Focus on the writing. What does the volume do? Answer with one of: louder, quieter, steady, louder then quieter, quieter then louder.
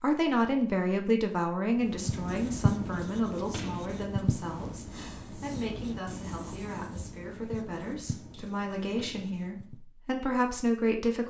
quieter.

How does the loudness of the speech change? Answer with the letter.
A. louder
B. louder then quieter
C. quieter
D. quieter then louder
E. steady
D.